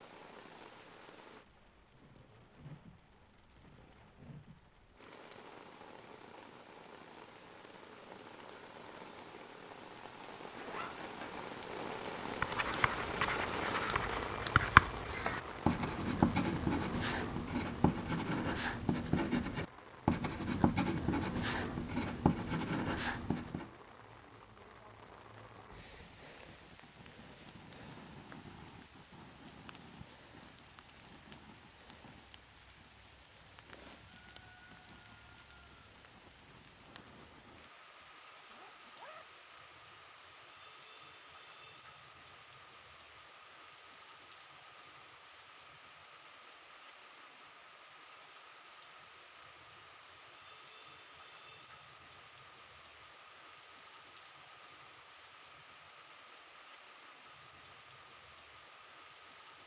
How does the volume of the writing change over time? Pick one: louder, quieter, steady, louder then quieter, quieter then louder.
louder then quieter.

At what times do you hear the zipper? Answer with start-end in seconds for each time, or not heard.
10.5-11.4, 37.9-39.3.